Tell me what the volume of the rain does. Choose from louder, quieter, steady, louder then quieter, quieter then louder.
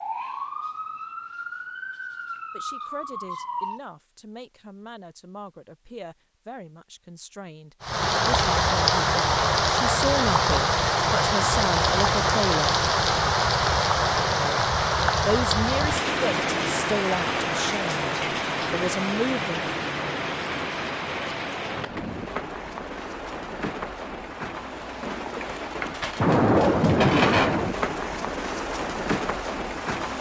quieter then louder.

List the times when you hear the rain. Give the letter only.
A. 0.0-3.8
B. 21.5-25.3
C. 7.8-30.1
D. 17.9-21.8
C.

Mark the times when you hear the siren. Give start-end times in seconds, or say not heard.
0.0-3.8.